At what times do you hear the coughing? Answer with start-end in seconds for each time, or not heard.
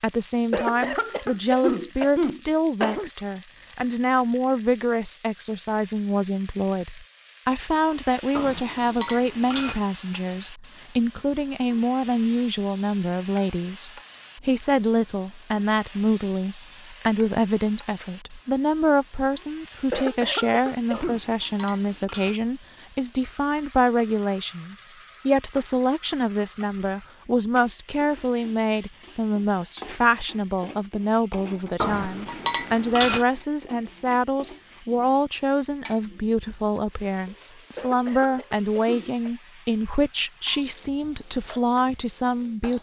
0.5-3.1, 19.9-21.2, 37.8-39.3.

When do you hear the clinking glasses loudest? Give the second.
33 s.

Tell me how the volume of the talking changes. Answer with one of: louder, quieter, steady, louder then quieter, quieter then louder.
steady.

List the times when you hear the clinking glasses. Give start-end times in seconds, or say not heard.
8.3-9.8, 20.9-22.4, 31.8-33.2.